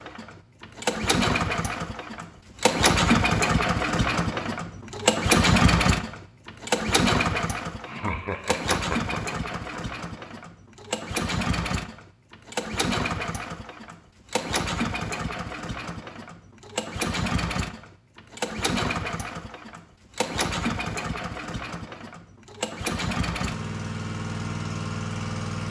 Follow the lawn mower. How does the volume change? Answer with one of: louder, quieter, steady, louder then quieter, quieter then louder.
quieter.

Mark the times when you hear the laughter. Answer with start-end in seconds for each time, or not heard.
7.8-9.8.